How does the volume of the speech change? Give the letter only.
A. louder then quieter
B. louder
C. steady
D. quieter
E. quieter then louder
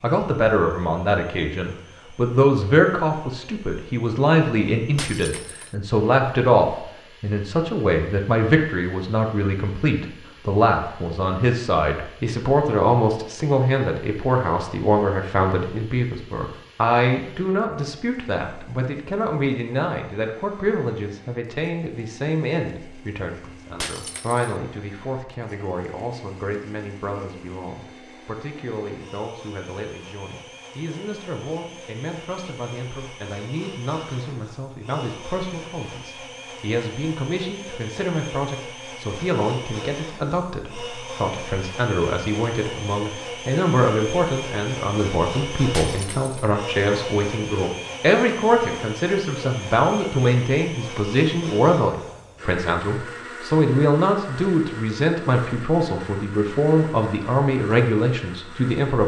E.